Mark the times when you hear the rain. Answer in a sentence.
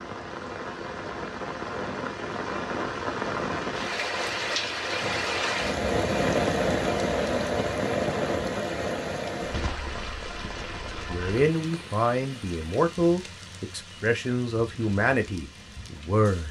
You can hear the rain from 0.0 to 16.4 s.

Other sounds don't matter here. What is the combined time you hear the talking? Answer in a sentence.
You can hear the talking for 5 seconds altogether.